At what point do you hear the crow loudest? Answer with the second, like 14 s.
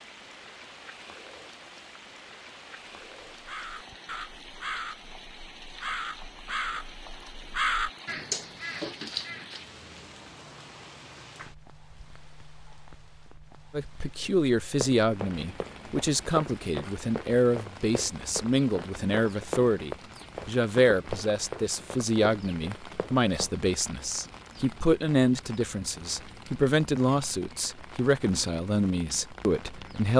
8 s.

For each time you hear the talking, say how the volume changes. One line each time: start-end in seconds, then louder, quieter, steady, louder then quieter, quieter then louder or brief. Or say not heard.
13.7-30.1 steady.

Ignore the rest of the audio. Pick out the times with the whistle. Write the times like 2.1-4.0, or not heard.
not heard.